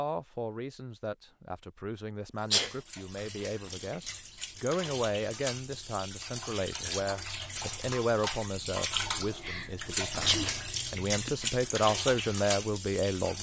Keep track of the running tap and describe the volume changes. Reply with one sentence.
The volume of the running tap goes up.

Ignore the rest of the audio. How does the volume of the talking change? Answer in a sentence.
The volume of the talking goes up.